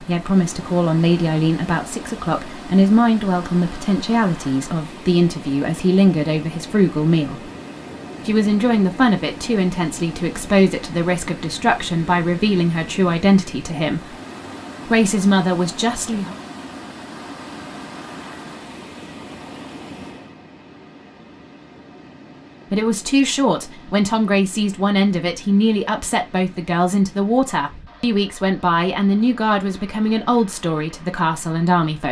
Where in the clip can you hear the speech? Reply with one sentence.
The speech can be heard from 0.0 to 7.4 s, from 8.2 to 14.2 s, from 14.8 to 16.4 s and from 22.7 to 32.0 s.